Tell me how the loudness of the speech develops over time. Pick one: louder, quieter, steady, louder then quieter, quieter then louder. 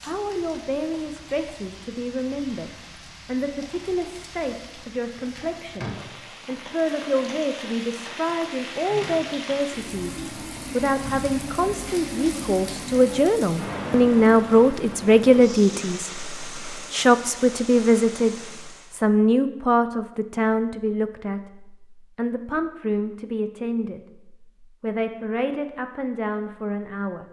louder then quieter.